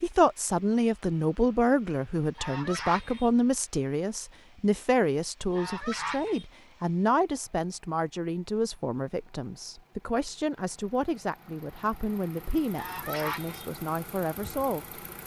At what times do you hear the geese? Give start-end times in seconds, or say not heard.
2.4-3.3, 5.5-6.5, 12.8-13.7.